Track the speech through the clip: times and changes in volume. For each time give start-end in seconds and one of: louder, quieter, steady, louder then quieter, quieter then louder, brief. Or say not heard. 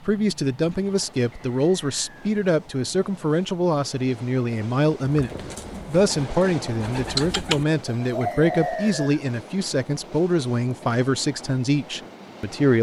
0.0-12.7 steady.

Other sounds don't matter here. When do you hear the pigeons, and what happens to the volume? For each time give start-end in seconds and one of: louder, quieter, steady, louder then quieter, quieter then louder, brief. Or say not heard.
5.0-9.1 louder.